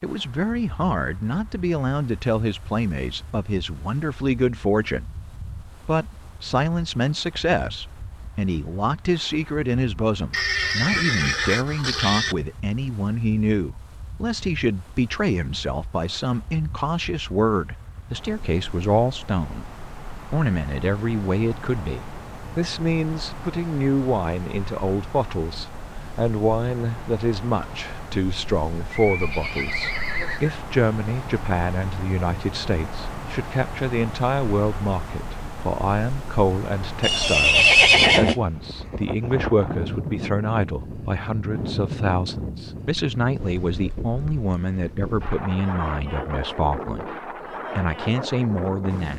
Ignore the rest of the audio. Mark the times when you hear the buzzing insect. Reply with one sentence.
You can't hear the buzzing insect here.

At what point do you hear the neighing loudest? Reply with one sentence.
The loudest moment of the neighing is at 38 seconds.